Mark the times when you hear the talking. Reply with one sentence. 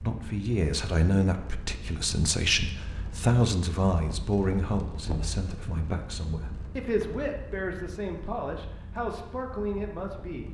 The talking can be heard from 0.0 to 10.5 s.